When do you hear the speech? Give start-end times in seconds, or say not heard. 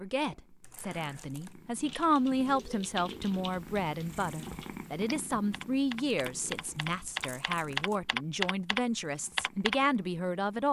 0.0-10.6.